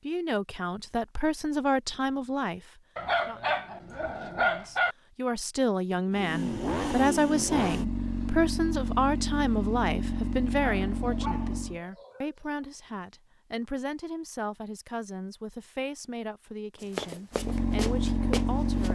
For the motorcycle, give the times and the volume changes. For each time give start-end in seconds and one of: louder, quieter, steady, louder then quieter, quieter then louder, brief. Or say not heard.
6.1-11.8 steady
17.3-18.9 brief.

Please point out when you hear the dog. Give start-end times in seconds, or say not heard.
3.0-5.0, 10.6-12.3.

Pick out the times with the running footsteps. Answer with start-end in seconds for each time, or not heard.
16.8-18.9.